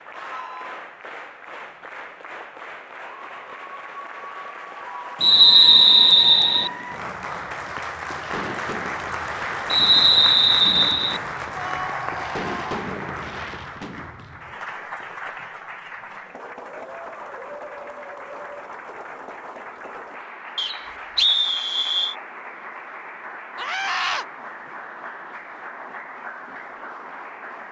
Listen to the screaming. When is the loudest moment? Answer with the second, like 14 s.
24 s.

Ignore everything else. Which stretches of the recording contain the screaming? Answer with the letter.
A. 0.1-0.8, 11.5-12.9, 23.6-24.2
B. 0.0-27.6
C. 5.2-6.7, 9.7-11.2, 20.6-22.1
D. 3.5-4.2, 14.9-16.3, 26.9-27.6
A.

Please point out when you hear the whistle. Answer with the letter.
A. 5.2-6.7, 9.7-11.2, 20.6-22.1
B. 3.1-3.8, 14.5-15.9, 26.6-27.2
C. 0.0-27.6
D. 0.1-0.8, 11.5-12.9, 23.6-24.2
A.